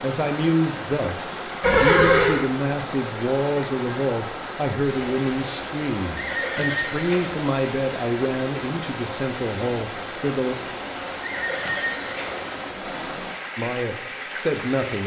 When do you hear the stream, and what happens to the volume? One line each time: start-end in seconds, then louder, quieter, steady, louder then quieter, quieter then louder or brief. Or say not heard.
0.0-15.0 steady.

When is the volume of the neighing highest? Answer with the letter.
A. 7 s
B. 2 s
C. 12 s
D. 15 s
B.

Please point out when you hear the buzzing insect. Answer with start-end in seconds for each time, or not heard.
not heard.